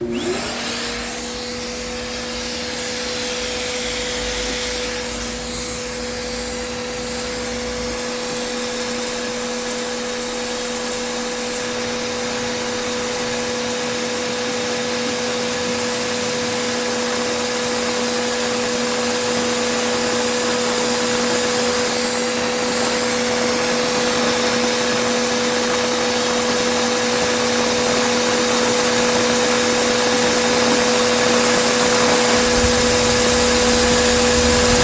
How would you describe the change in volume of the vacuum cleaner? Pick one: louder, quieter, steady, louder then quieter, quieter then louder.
louder.